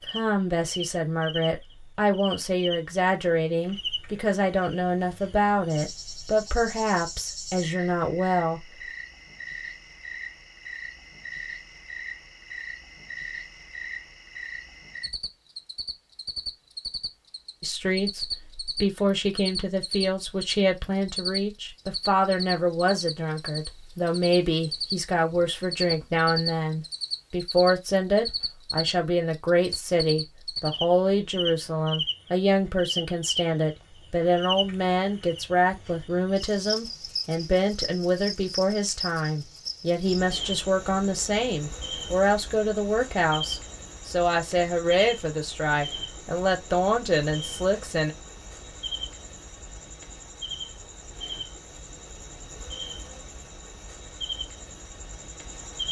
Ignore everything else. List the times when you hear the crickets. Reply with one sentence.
The crickets can be heard from 0.0 to 55.8 s.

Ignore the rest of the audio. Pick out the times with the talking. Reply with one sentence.
The talking can be heard from 0.1 to 8.7 s and from 17.6 to 48.1 s.